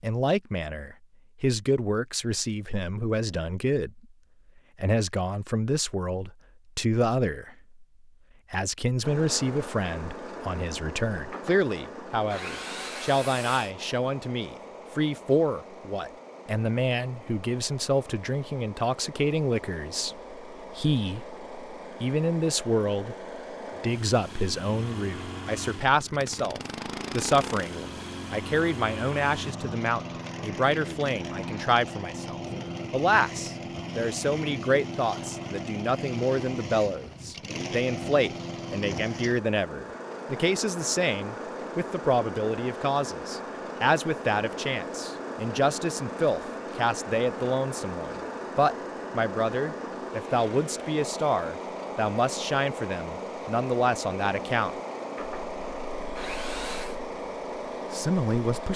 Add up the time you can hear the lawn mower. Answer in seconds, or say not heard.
50 s.